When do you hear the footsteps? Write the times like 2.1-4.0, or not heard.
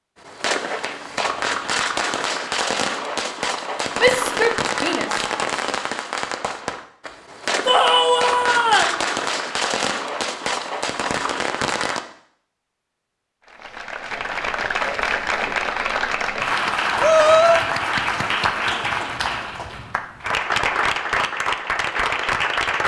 not heard.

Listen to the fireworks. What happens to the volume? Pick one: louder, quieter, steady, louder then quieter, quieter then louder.
steady.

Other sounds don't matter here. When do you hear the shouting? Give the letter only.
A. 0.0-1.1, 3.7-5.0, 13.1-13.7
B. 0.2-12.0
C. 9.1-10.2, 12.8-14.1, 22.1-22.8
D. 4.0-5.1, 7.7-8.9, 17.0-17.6
D.